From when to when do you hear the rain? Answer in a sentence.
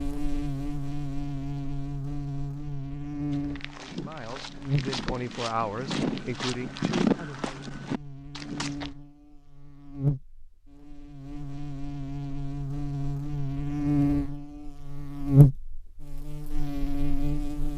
The rain can't be heard in this clip.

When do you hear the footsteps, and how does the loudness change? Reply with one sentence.
The footsteps can be heard from 3.3 to 8.9 s, getting louder then quieter.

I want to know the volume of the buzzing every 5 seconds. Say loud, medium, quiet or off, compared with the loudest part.
medium, quiet, medium, loud.